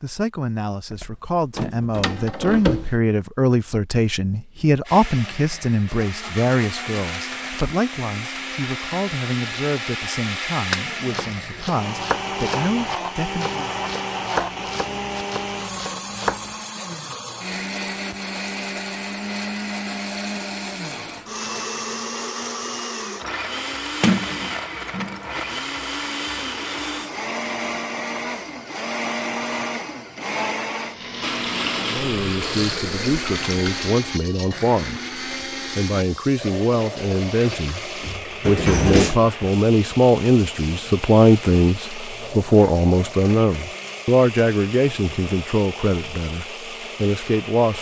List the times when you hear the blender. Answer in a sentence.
The blender can be heard from 4.8 to 47.7 s.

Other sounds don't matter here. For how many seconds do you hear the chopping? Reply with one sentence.
The chopping can be heard for 6 seconds in total.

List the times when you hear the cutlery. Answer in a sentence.
The cutlery can't be heard in this clip.